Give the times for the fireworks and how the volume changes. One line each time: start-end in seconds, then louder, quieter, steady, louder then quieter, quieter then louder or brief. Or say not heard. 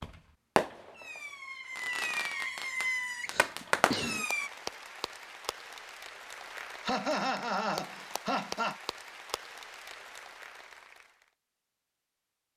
0.0-4.5 quieter then louder.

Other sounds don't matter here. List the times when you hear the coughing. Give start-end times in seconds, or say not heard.
3.2-4.2, 6.8-8.8.